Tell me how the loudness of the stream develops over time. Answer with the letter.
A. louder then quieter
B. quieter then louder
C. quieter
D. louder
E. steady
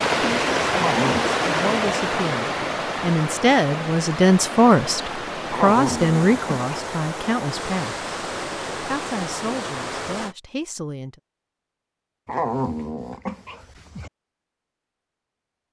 C.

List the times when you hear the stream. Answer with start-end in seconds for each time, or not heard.
0.0-10.3.